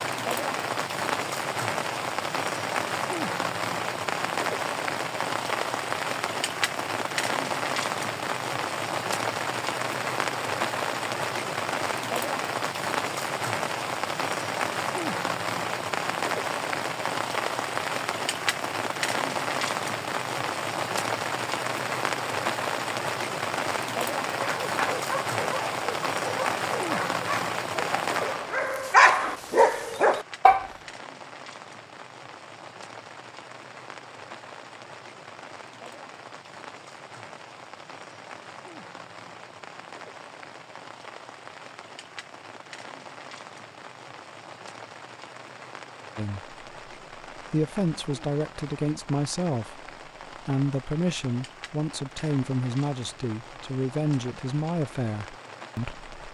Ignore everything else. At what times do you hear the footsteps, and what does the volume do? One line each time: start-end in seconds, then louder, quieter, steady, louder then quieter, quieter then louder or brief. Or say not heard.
not heard.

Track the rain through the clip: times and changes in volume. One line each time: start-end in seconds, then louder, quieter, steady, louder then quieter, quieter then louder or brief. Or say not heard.
0.0-56.2 quieter.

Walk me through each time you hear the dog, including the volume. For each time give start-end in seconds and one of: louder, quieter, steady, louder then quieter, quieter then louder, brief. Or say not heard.
24.4-30.7 louder.